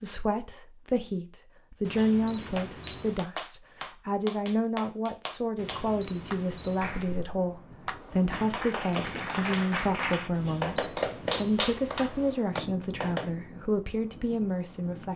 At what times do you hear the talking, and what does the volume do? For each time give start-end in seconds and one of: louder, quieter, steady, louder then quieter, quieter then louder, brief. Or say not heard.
0.0-15.1 steady.